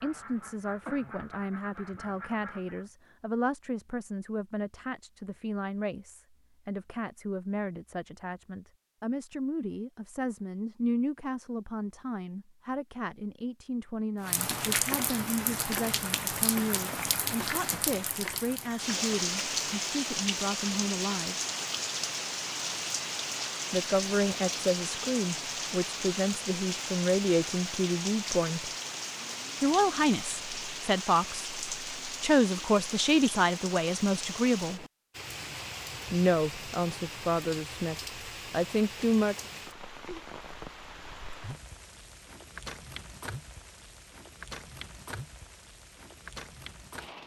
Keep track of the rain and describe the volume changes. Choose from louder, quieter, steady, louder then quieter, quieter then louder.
quieter.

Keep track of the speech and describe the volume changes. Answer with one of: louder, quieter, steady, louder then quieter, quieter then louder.
louder.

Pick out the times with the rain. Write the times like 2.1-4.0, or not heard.
14.2-47.2.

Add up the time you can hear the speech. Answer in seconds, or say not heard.
35 s.